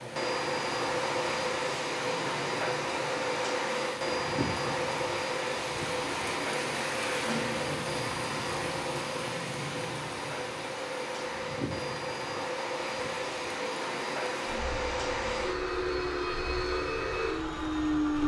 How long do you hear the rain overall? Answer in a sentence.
You can hear the rain for 18 seconds altogether.